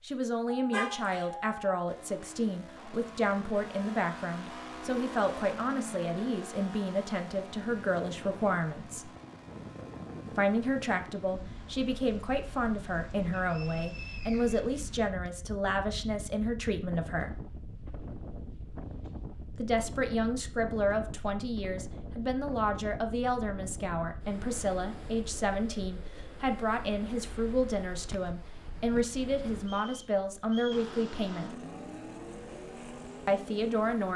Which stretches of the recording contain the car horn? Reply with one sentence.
You can hear the car horn from 0.5 to 1.8 s.